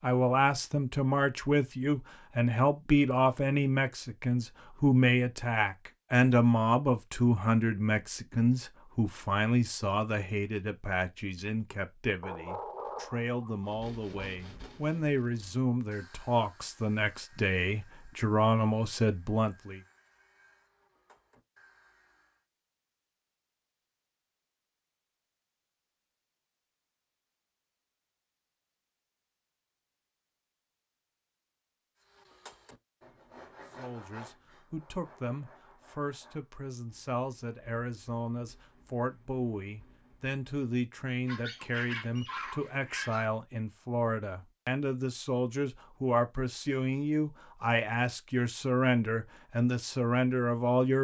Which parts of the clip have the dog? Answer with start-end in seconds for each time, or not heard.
12.2-14.3, 41.2-43.2.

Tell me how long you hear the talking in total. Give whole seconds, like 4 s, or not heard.
37 s.